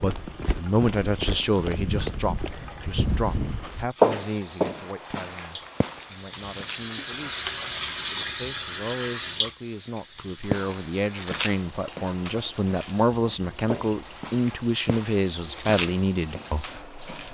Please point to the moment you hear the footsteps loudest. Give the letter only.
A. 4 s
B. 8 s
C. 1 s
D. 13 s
A.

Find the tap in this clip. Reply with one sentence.
You can hear the tap from 0.0 to 17.3 s.